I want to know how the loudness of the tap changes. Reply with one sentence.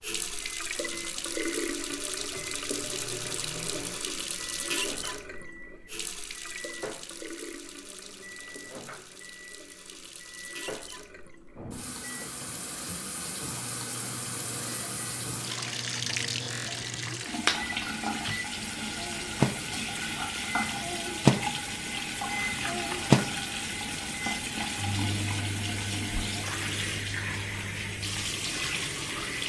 The loudness of the tap goes down, then up.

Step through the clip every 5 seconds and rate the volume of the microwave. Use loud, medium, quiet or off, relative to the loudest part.
quiet, quiet, quiet, medium, loud, quiet.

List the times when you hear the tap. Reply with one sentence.
You can hear the tap from 0.0 to 29.4 s.